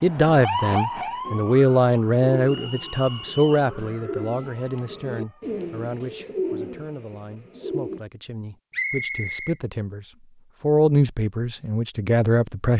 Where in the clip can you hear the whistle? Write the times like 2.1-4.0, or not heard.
2.5-3.7, 8.7-9.6.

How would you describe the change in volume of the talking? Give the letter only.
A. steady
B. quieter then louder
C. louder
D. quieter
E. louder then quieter
B.